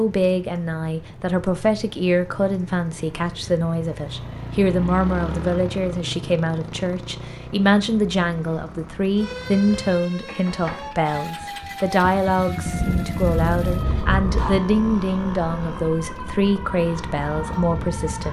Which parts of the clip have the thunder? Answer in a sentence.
The thunder can be heard from 12.7 to 14.6 s.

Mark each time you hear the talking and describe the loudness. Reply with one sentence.
You can hear the talking from 0.0 to 18.2 s, at a steady volume.